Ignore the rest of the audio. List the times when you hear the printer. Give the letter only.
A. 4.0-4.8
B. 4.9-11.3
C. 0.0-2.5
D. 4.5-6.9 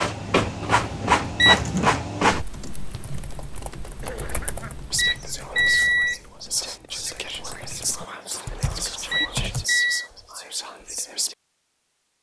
C.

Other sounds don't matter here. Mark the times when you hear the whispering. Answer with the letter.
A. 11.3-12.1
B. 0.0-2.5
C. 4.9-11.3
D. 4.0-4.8
C.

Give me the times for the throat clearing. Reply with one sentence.
You can hear the throat clearing from 4.0 to 4.8 s.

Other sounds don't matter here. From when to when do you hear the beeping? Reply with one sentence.
You can hear the beeping from 0.6 to 1.6 s, from 4.2 to 6.2 s and from 8.3 to 10.1 s.